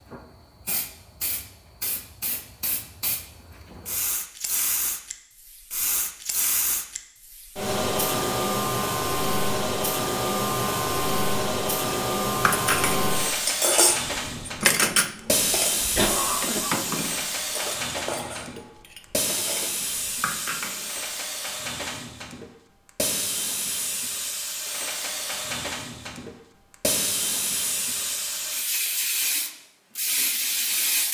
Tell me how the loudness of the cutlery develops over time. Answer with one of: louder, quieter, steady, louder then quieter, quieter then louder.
quieter.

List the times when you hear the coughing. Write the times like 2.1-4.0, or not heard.
15.9-16.8.